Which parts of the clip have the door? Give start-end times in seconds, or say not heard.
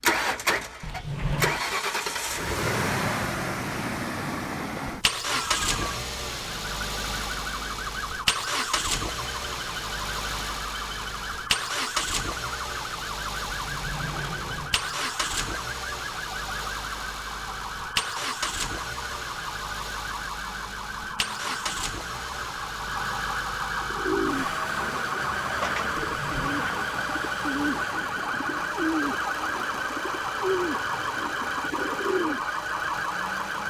0.8-1.6, 13.4-15.2, 26.1-26.6.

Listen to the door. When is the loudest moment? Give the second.
1 s.